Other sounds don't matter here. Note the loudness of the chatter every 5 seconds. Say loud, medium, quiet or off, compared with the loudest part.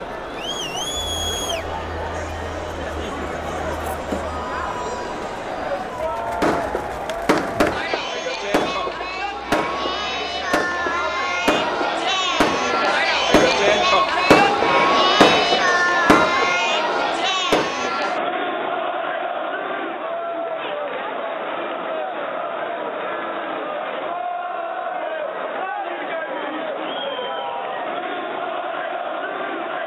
medium, medium, loud, loud, medium, medium.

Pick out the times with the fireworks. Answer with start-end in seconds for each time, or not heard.
6.4-18.0.